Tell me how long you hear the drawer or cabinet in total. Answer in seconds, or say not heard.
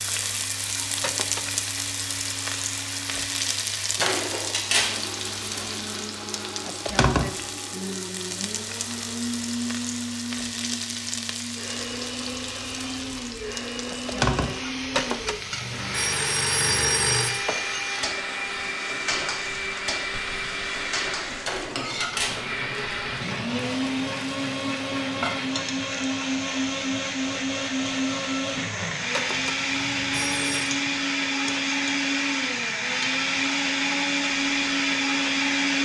2 s.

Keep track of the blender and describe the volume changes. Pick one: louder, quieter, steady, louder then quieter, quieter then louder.
louder.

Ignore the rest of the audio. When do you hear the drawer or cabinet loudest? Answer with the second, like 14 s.
5 s.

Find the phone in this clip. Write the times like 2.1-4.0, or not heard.
1.0-1.6, 14.9-17.4, 29.1-30.8.